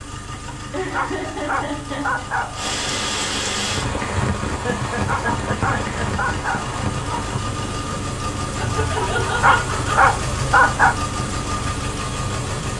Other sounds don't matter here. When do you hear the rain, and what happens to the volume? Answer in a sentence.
The rain can be heard from 2.5 to 12.7 s, getting quieter.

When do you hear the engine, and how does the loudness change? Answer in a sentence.
You can hear the engine from 0.0 to 12.7 s, getting louder.